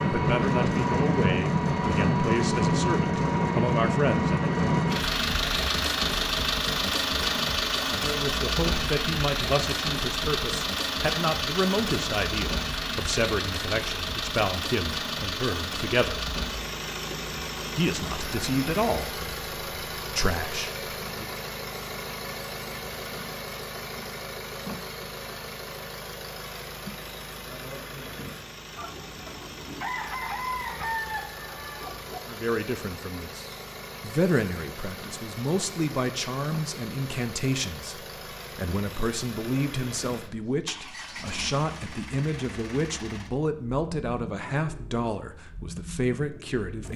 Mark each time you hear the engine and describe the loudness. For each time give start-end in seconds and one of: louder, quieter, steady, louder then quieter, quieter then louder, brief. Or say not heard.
0.0-46.9 quieter.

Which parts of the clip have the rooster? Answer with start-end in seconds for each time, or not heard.
28.8-32.2.